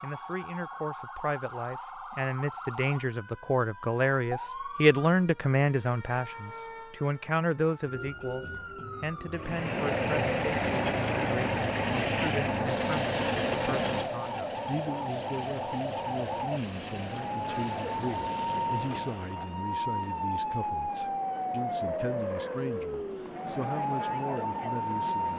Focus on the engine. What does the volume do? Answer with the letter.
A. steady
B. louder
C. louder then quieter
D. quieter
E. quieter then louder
D.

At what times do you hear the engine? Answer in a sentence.
The engine can be heard from 9.3 to 19.4 s.